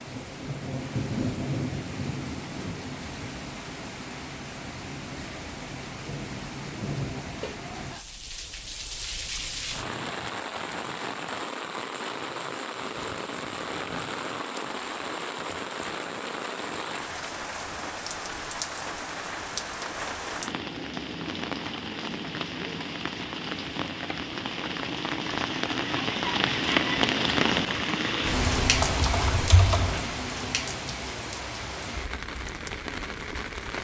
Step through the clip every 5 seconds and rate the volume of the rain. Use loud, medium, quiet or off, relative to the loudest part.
medium, medium, medium, medium, medium, loud, medium.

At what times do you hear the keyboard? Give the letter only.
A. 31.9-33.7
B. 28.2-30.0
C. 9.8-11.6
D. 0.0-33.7
B.